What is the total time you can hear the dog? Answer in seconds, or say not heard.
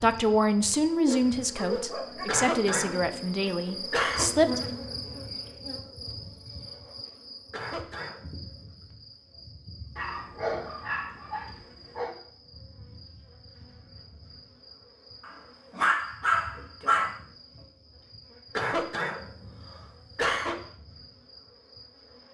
5 s.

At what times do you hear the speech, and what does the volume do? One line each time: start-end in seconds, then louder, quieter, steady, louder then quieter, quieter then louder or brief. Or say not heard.
0.0-4.8 quieter.